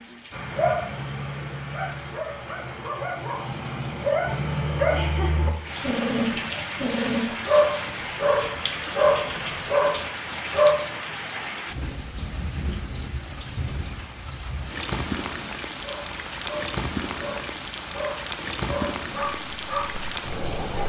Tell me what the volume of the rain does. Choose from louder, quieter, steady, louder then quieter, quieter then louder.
louder.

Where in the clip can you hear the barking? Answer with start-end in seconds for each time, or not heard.
0.3-10.8, 15.8-20.8.